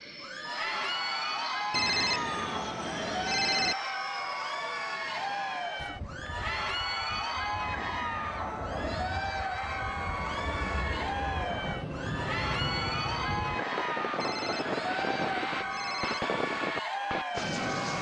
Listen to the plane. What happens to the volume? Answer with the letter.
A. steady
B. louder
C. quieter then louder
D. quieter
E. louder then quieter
B.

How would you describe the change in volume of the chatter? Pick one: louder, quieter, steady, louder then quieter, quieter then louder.
steady.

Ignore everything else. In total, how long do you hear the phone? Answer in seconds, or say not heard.
4 s.